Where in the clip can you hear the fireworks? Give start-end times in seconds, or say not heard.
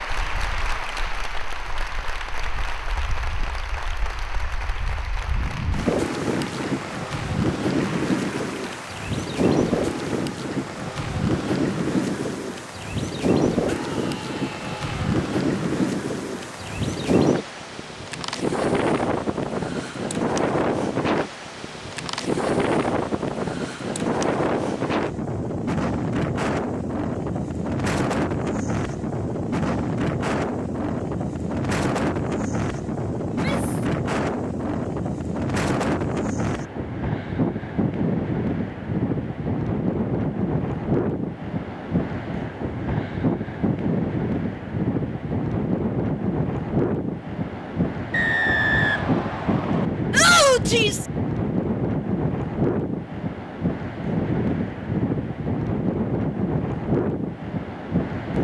not heard.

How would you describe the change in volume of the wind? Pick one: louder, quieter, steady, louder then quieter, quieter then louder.
steady.